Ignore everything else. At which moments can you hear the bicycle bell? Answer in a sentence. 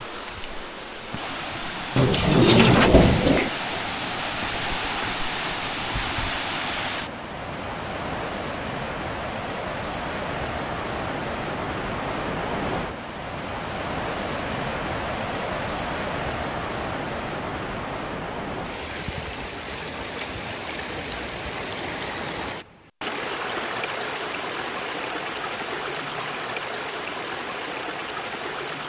You can't hear the bicycle bell here.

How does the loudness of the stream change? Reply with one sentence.
The volume of the stream stays about the same.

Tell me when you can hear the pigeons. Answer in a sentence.
You can hear the pigeons from 1.9 to 3.5 s.